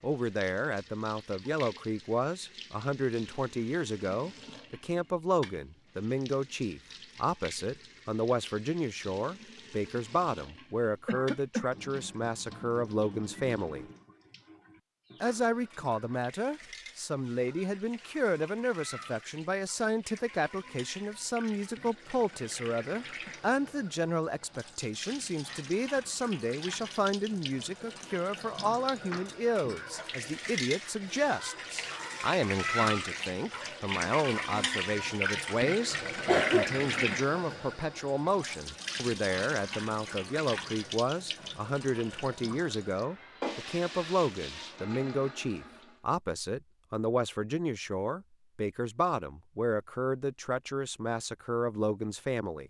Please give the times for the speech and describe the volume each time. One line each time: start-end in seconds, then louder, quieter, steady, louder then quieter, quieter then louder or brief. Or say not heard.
0.0-13.8 steady
15.2-52.6 steady.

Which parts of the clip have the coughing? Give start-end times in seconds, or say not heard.
11.1-11.7, 36.2-37.1.